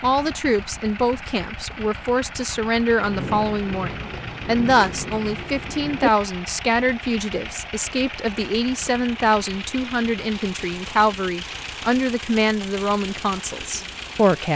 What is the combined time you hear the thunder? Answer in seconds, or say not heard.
3 s.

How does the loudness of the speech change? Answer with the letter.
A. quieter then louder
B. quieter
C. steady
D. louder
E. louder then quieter
C.